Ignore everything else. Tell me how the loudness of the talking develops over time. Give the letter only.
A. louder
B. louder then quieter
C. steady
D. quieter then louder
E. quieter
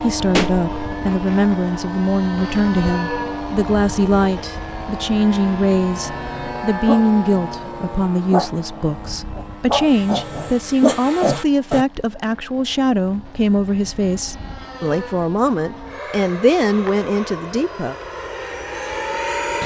C.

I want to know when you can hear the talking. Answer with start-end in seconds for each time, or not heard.
0.0-17.9.